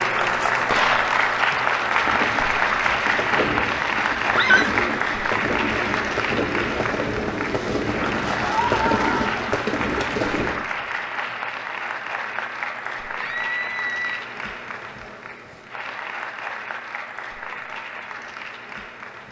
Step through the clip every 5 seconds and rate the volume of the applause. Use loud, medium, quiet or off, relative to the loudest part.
loud, medium, medium, quiet.